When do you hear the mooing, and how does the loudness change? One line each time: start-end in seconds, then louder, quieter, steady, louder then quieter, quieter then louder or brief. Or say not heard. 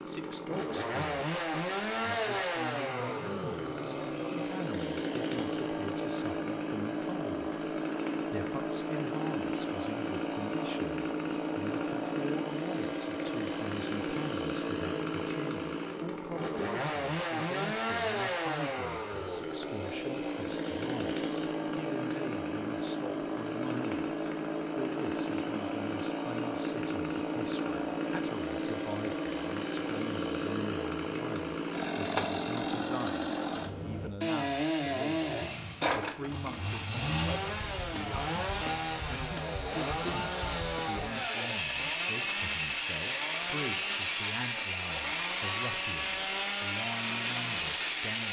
not heard.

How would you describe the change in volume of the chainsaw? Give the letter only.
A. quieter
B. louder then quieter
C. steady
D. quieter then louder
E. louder
C.